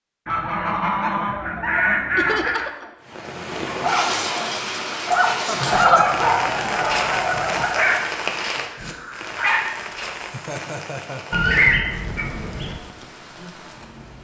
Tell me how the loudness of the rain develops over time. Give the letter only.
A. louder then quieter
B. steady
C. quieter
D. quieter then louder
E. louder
C.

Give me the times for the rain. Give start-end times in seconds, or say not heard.
3.0-14.1.